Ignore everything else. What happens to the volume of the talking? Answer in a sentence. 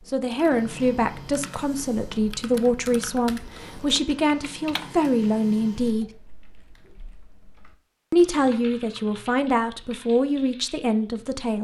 The loudness of the talking stays about the same.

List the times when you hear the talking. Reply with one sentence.
The talking can be heard from 0.0 to 6.1 s and from 8.1 to 11.5 s.